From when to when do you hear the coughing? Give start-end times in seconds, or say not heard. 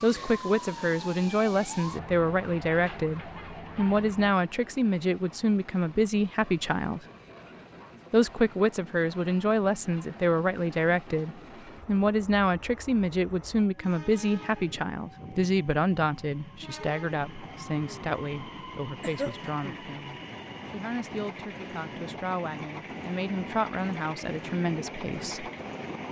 19.0-19.9.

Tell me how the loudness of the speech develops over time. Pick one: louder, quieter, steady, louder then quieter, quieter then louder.
quieter.